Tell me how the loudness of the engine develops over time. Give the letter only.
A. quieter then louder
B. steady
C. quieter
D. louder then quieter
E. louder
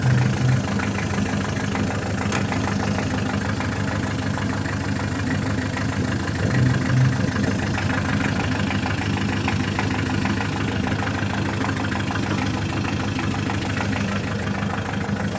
B.